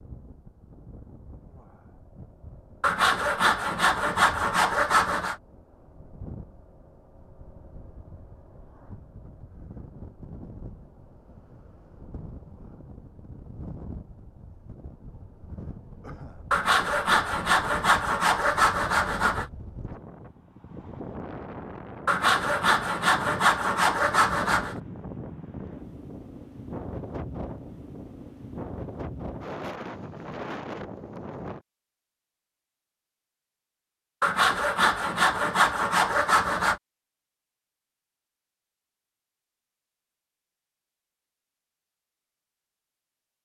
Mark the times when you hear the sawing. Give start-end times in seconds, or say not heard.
2.8-5.3, 16.5-19.4, 22.1-24.8, 34.2-36.8.